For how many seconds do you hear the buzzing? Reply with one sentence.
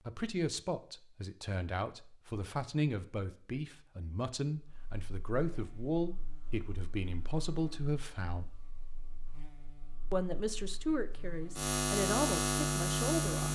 You can hear the buzzing for 9 seconds altogether.